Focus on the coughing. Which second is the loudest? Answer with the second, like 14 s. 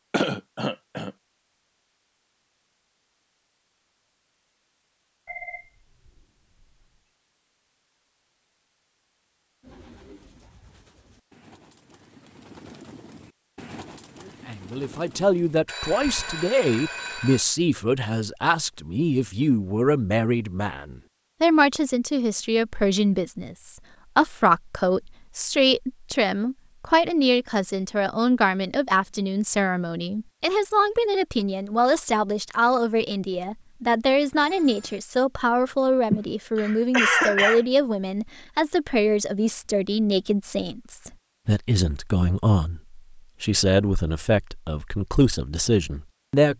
37 s.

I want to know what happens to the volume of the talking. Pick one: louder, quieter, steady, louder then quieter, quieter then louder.
steady.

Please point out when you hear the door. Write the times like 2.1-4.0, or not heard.
not heard.